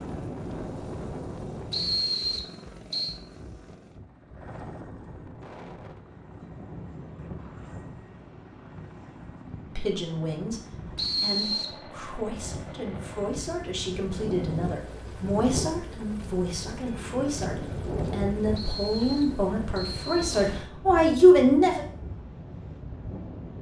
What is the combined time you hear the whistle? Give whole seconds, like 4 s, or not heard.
4 s.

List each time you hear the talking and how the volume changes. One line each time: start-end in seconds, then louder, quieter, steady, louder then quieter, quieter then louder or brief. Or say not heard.
9.8-10.6 brief
11.2-21.9 louder.